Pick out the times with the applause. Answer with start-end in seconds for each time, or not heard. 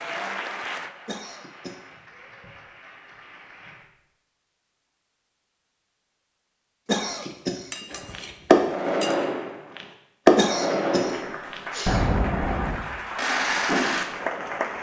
0.0-4.0, 11.0-14.7.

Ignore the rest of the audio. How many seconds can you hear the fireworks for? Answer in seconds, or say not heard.
6 s.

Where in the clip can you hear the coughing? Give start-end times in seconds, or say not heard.
1.1-1.8, 6.8-7.8, 10.3-12.0.